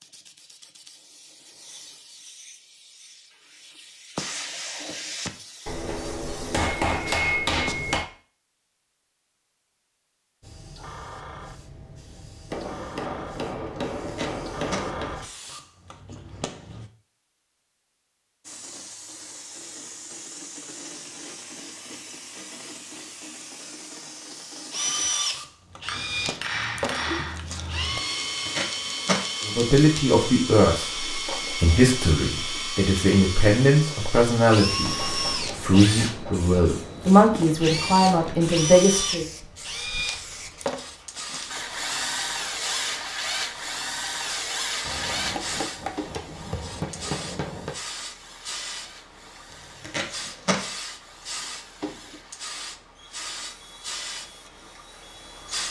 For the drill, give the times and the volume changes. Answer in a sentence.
The drill can be heard from 24.7 to 55.6 s, getting quieter.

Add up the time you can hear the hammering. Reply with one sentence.
The hammering can be heard for 11 seconds in total.